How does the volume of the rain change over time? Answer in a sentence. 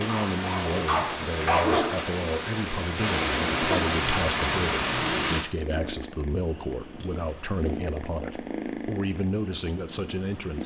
The loudness of the rain goes up.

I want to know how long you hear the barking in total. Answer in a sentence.
The barking can be heard for 2 seconds in total.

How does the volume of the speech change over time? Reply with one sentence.
The loudness of the speech stays about the same.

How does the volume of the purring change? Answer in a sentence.
The loudness of the purring goes up, then down.